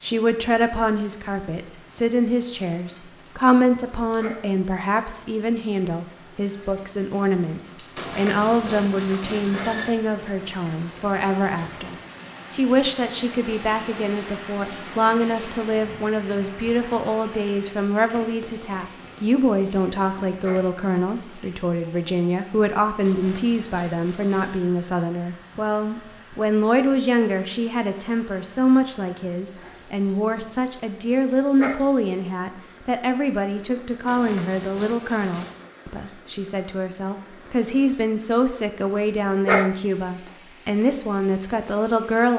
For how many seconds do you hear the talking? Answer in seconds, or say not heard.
42 s.